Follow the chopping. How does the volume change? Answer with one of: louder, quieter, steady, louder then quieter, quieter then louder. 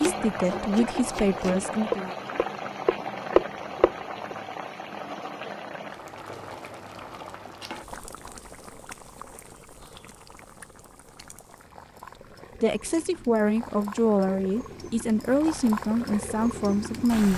louder.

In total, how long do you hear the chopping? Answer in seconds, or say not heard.
4 s.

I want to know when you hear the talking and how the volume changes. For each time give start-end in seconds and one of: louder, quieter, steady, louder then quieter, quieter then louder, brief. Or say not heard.
0.0-2.1 brief
12.6-17.3 steady.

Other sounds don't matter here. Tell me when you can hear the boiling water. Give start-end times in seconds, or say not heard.
0.0-17.3.